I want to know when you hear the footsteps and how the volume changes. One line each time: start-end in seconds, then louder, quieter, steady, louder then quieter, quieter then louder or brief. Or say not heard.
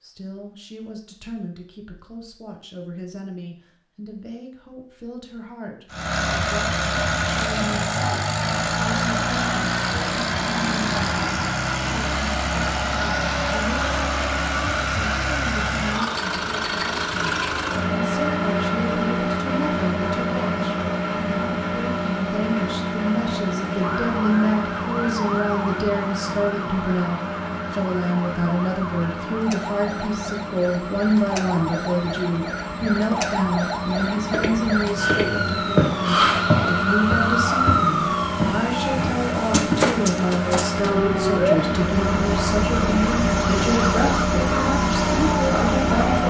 34.3-39.9 louder then quieter.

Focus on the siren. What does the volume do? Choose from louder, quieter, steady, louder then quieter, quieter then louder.
louder.